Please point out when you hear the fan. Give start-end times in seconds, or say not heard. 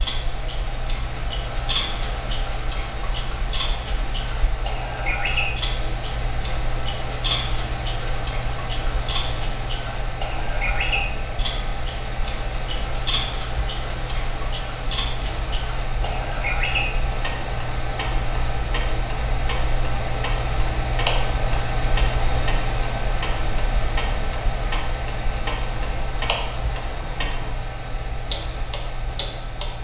0.0-29.7.